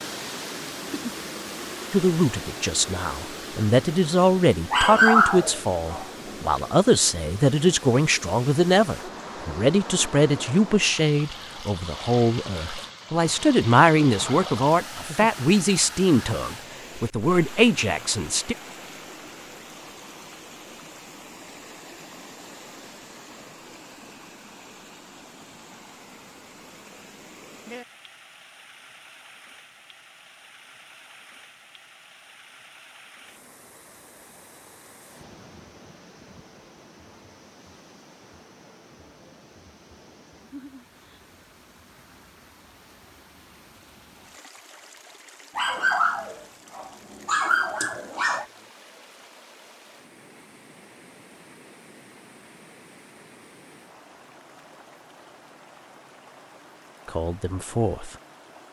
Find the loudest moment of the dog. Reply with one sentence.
The volume of the dog peaks at 5 seconds.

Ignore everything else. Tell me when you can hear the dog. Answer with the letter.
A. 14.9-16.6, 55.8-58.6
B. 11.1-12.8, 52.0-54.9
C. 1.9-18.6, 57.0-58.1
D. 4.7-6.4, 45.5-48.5
D.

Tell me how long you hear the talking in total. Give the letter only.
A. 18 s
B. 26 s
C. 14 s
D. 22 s
A.